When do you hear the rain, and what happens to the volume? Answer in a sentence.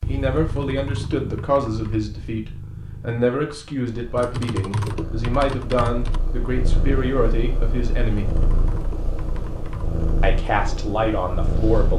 The rain can't be heard in this clip.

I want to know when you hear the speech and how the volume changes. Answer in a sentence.
The speech can be heard from 0.1 to 8.3 s, at a steady volume; and briefly from 10.2 to 11.9 s.